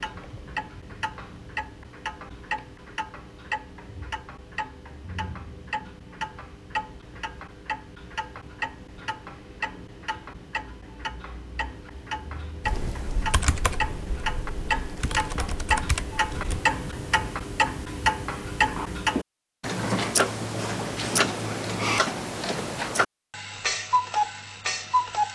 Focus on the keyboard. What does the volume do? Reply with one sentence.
The volume of the keyboard goes down, then up.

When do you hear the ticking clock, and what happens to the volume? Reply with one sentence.
The ticking clock can be heard from 0.0 to 25.2 s, getting louder.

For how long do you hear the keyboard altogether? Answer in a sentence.
The keyboard can be heard for 4 seconds in total.